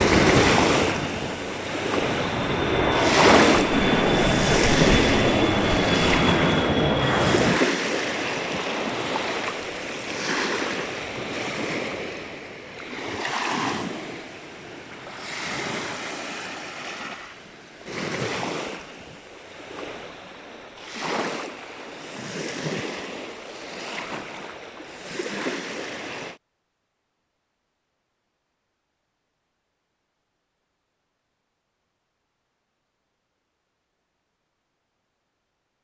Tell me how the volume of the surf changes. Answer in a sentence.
The loudness of the surf goes down.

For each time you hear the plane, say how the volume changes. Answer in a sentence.
You can hear the plane from 0.0 to 7.6 s, getting louder.